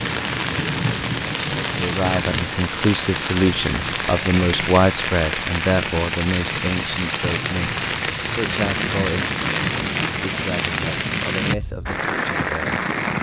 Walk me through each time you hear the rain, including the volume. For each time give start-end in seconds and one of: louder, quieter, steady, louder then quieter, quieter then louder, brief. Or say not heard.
0.0-13.1 steady.